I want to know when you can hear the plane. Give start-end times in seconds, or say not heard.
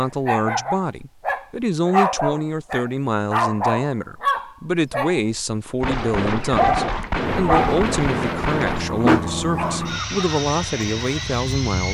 7.2-11.8.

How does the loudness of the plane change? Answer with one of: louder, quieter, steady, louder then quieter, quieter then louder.
steady.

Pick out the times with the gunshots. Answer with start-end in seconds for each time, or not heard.
5.8-8.8.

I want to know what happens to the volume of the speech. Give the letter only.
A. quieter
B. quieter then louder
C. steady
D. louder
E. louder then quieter
C.